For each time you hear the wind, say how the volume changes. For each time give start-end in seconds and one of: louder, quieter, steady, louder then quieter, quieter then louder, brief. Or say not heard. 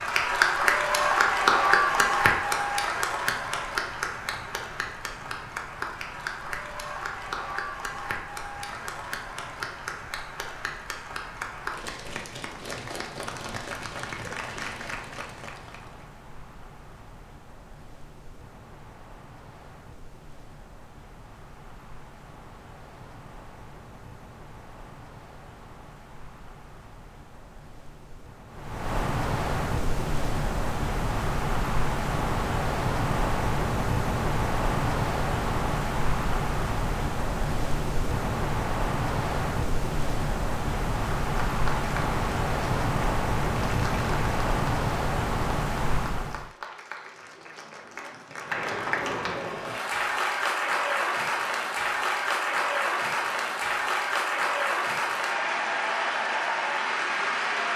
0.0-46.5 louder.